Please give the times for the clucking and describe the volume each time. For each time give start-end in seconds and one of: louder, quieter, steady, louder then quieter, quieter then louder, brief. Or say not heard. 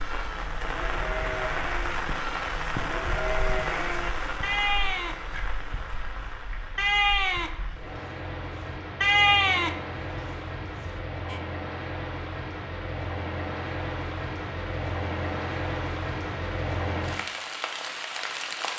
not heard.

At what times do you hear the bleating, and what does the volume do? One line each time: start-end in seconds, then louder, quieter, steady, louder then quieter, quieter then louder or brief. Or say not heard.
0.0-11.3 louder.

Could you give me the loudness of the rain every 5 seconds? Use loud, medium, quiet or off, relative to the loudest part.
loud, medium, loud, loud.